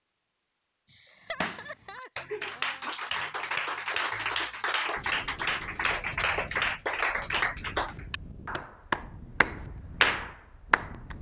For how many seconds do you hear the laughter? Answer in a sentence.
You can hear the laughter for 2 seconds altogether.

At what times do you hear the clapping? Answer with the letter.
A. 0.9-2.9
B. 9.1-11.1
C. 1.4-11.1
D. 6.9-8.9
C.